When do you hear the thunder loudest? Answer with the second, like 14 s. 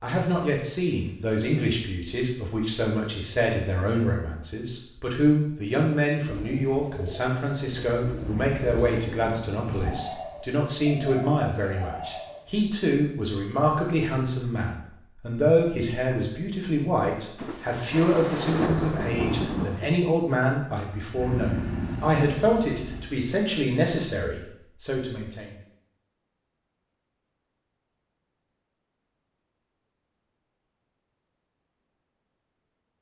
19 s.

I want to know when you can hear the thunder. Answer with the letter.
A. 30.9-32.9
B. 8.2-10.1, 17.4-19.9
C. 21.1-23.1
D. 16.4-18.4
B.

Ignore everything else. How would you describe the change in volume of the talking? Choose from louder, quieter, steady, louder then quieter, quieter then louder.
steady.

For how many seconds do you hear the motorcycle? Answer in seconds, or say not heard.
2 s.